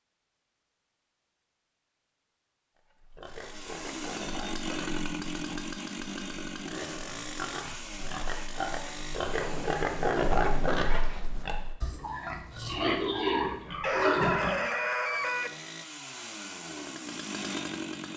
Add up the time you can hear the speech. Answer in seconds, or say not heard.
not heard.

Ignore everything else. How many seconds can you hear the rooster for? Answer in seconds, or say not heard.
2 s.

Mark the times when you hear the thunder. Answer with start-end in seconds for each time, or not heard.
9.2-11.2.